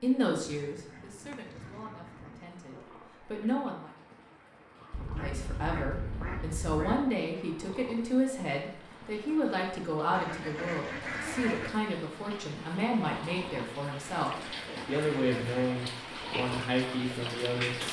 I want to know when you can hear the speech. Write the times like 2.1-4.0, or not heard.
0.0-3.9, 5.0-17.8.